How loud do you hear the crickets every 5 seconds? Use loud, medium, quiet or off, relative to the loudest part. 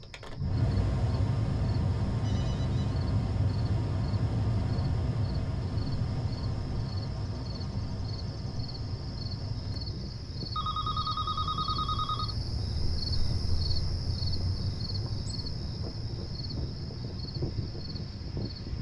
quiet, medium, loud, loud.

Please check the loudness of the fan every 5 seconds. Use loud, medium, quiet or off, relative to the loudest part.
loud, medium, quiet, medium.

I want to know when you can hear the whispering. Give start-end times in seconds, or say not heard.
not heard.